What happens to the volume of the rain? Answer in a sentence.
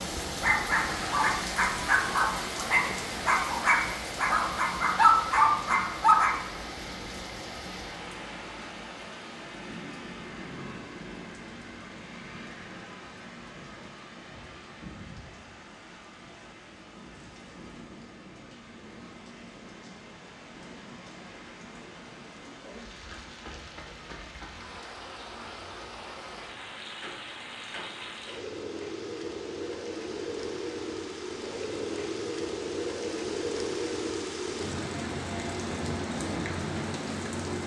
The volume of the rain goes down, then up.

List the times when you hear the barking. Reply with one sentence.
You can hear the barking from 0.2 to 6.3 s.